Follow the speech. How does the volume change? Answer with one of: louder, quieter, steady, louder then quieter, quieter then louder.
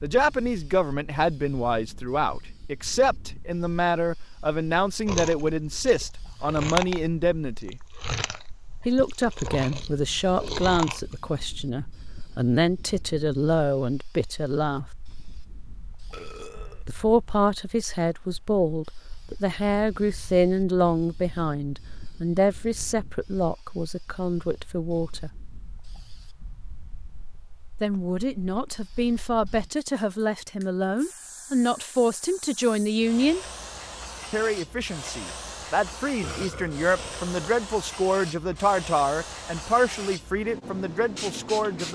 steady.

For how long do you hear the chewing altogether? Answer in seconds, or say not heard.
6 s.